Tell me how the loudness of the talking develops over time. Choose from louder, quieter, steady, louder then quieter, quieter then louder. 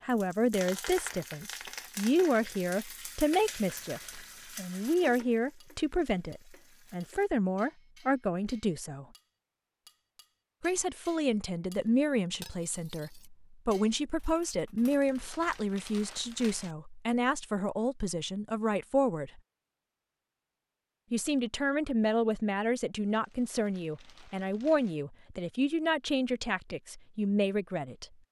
steady.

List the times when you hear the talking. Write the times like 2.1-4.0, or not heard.
0.0-9.1, 10.6-19.4, 21.1-28.1.